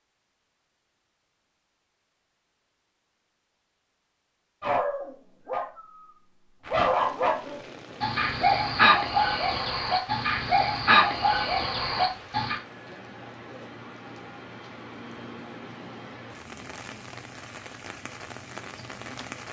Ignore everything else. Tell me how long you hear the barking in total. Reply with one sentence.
The barking can be heard for 8 seconds in total.